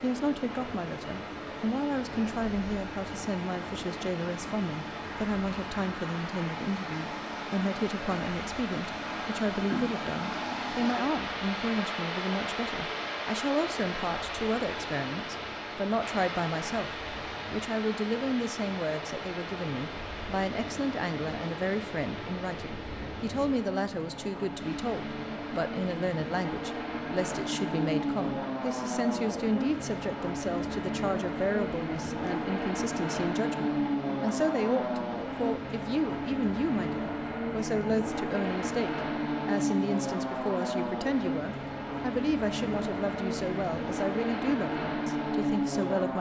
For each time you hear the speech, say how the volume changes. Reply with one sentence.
The speech can be heard from 0.0 to 16.9 s, at a steady volume; and from 17.5 to 46.1 s, at a steady volume.